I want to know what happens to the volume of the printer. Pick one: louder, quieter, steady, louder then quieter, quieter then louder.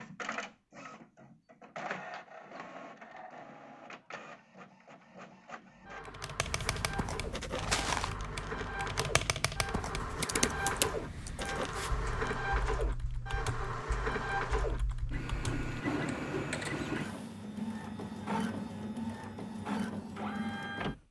louder.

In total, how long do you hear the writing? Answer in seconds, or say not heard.
6 s.